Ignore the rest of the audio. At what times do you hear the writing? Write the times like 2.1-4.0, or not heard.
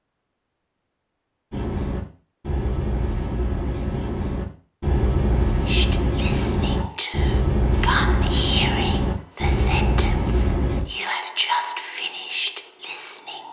1.5-10.8.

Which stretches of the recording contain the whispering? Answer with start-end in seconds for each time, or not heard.
5.7-13.4.